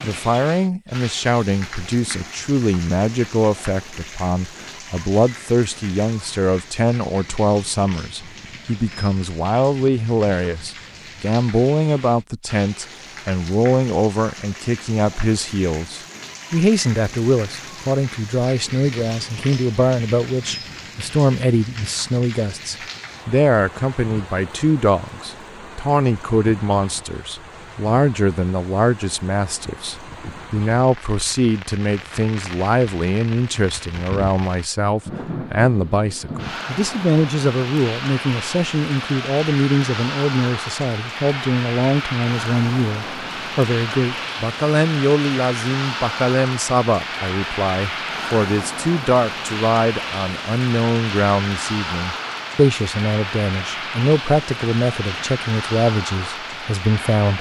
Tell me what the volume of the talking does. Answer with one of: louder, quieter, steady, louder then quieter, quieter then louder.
steady.